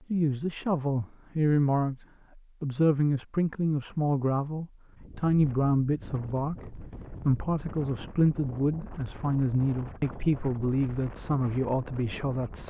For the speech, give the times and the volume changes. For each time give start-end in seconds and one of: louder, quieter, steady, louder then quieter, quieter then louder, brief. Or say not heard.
0.1-12.6 steady.